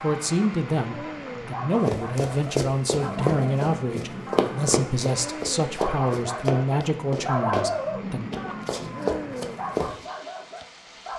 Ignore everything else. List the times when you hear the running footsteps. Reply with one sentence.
The running footsteps can be heard from 1.9 to 9.9 s.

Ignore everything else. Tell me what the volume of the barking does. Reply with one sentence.
The volume of the barking goes up, then down.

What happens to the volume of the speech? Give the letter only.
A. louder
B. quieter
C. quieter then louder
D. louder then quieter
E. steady
E.